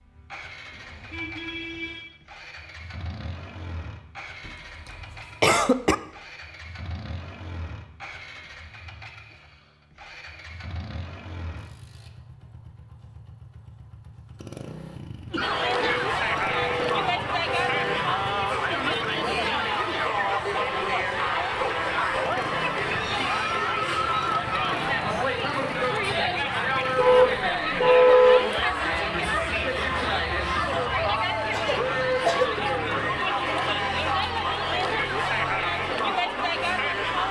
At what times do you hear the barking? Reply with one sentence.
You can't hear the barking here.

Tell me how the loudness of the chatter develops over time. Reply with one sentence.
The volume of the chatter stays about the same.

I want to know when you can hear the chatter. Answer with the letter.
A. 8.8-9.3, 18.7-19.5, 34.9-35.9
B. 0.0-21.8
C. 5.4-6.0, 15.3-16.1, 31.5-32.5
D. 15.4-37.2
D.